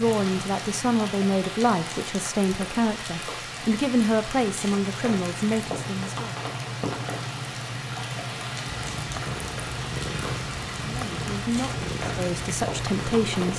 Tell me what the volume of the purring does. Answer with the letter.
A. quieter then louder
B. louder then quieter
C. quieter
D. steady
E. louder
D.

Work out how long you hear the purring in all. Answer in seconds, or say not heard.
5 s.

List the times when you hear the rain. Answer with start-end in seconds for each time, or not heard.
0.0-13.5.